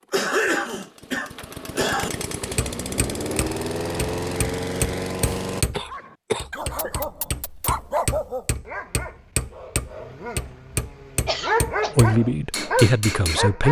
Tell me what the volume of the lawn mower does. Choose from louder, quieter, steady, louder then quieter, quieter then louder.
louder.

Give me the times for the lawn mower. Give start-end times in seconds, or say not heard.
0.0-5.7.